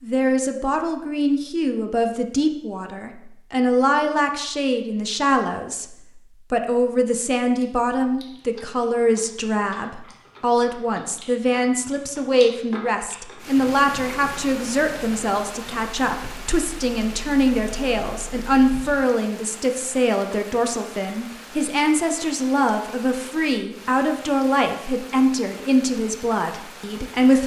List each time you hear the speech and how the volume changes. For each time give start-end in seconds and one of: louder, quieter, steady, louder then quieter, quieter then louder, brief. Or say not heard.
0.0-27.4 steady.